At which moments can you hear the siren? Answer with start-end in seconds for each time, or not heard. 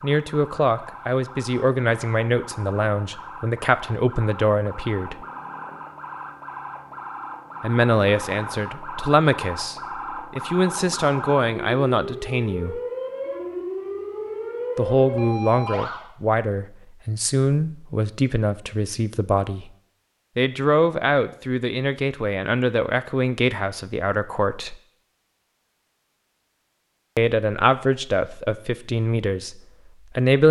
0.0-16.1.